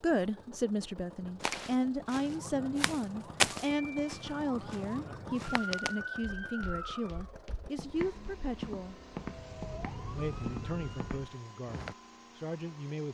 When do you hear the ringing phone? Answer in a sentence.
You can't hear the ringing phone here.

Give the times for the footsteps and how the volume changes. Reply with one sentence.
You can hear the footsteps from 1.4 to 11.9 s, getting quieter then louder.